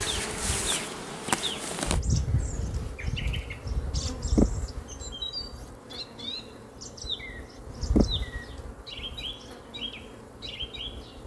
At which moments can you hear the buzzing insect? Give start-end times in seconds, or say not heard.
0.0-11.2.